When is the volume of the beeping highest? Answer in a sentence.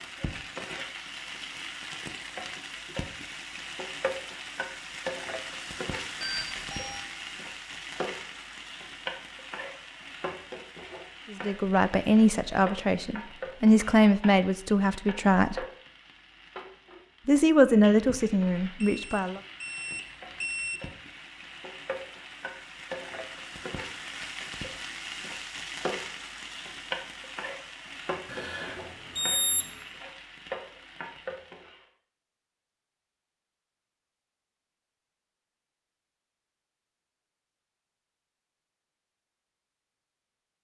The loudest moment of the beeping is at 29 seconds.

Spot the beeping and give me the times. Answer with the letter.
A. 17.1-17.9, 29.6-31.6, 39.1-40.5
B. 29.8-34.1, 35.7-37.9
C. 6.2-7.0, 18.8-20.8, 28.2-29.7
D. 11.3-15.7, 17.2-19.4
C.